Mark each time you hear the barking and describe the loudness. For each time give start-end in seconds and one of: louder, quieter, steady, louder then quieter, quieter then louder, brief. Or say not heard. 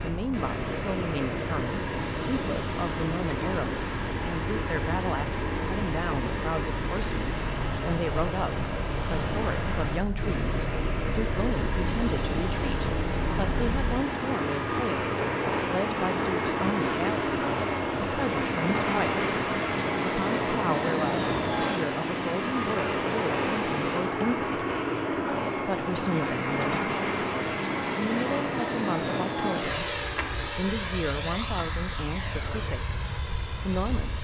not heard.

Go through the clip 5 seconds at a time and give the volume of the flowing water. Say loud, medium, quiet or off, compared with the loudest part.
loud, loud, loud, loud, loud, off, off.